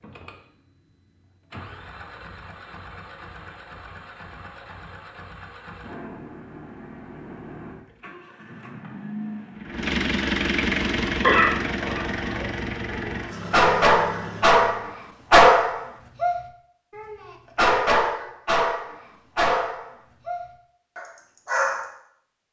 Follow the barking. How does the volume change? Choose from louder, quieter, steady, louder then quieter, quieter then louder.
louder then quieter.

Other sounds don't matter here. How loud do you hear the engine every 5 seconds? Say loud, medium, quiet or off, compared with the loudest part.
quiet, medium, loud, off, off.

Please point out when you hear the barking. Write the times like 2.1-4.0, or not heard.
11.1-21.9.